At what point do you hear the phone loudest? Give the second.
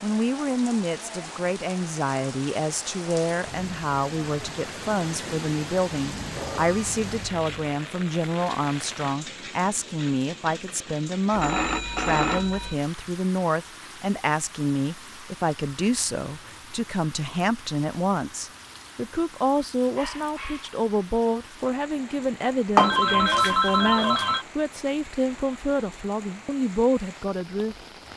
23 s.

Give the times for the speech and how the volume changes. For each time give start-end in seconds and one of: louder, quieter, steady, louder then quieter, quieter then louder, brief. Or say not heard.
0.0-27.8 steady.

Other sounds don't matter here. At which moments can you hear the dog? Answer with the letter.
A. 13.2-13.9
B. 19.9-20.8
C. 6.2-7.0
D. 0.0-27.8
B.